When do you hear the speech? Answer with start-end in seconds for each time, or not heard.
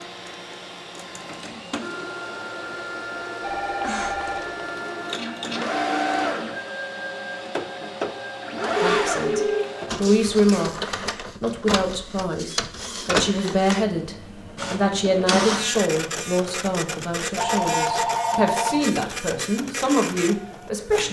8.8-21.0.